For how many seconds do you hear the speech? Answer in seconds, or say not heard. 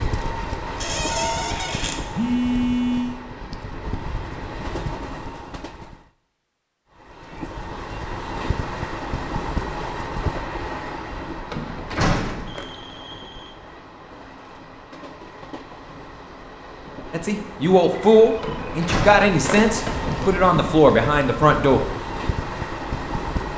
5 s.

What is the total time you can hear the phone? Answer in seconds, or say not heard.
3 s.